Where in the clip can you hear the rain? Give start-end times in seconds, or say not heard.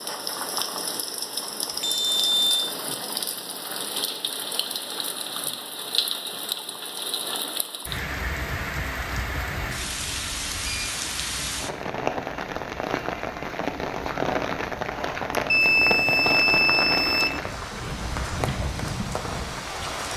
0.0-20.1.